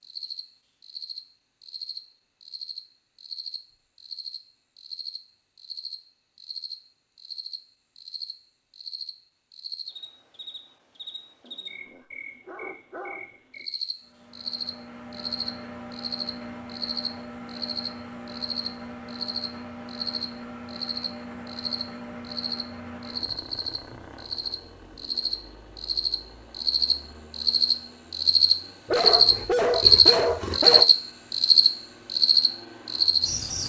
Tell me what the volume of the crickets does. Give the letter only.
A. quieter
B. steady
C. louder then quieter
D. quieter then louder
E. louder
E.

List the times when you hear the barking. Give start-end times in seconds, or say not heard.
11.4-13.3, 28.9-30.9.